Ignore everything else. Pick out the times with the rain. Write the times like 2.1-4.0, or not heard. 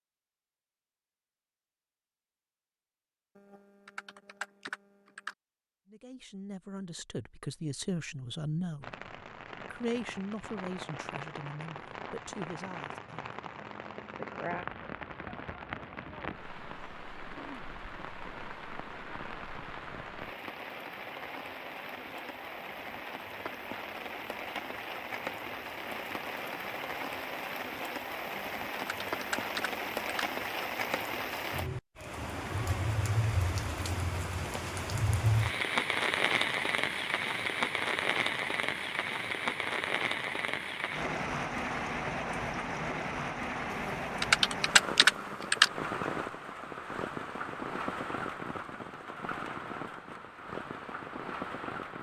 8.8-51.9.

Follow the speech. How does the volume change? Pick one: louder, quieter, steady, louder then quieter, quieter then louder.
louder then quieter.